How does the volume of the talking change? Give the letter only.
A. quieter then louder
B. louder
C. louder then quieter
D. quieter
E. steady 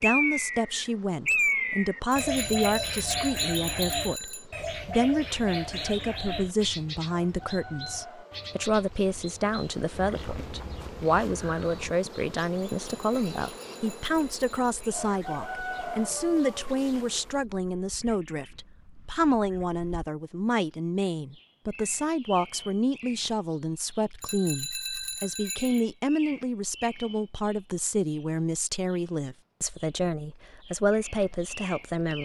E.